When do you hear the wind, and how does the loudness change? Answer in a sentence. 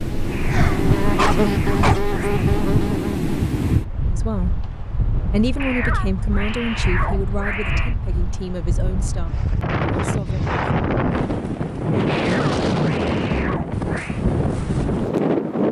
The wind can be heard from 0.0 to 15.6 s, getting quieter then louder.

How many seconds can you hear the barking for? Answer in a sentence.
You can hear the barking for 2 seconds altogether.